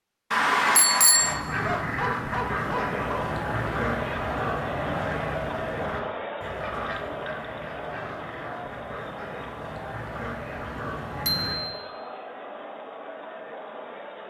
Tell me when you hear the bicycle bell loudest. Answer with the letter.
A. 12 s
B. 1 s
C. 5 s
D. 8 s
B.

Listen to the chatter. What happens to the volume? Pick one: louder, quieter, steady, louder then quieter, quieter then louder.
quieter.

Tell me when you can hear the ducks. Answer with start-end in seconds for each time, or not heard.
1.1-11.7.